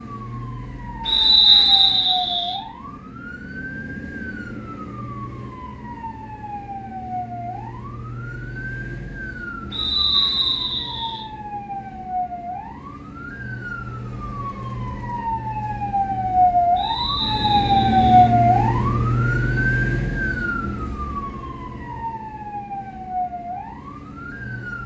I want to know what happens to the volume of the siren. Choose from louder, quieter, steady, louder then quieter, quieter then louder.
louder then quieter.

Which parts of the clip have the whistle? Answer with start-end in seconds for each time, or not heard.
1.1-2.5, 9.7-11.2, 16.8-18.2.